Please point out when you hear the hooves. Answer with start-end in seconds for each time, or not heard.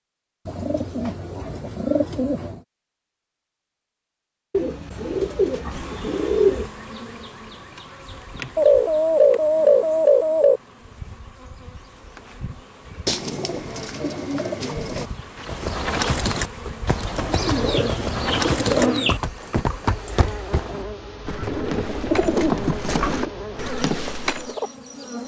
15.4-24.6.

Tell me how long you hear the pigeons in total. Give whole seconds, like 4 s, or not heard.
12 s.